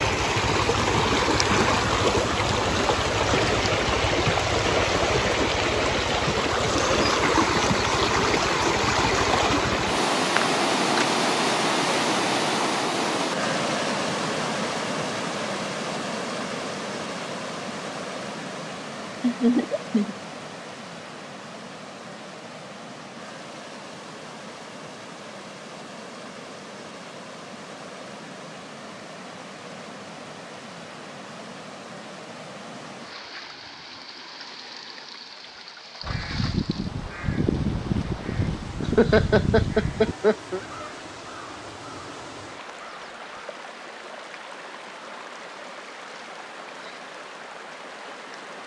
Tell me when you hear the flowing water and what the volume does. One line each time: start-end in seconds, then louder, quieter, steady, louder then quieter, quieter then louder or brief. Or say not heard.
0.0-48.6 quieter.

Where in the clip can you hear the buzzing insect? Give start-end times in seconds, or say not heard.
not heard.